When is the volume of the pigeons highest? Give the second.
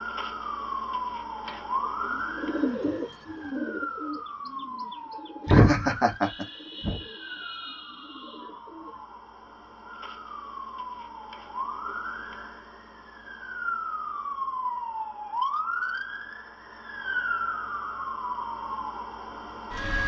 3 s.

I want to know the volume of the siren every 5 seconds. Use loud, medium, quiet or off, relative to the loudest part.
loud, medium, loud, loud.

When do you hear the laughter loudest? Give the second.
6 s.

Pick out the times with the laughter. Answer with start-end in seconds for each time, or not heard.
5.5-7.0.